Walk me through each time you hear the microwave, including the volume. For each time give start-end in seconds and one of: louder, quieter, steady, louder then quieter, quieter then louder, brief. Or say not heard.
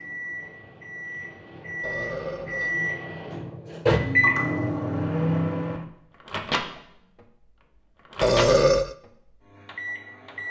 0.0-10.4 louder then quieter.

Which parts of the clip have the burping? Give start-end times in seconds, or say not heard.
1.8-2.8, 8.2-8.9.